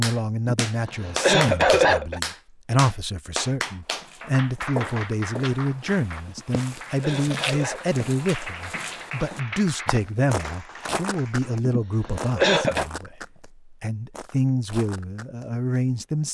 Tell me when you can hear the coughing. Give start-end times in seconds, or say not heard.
0.5-2.2, 6.2-7.8, 11.7-12.8.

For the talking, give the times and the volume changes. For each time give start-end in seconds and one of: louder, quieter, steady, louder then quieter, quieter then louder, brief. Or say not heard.
0.0-16.2 steady.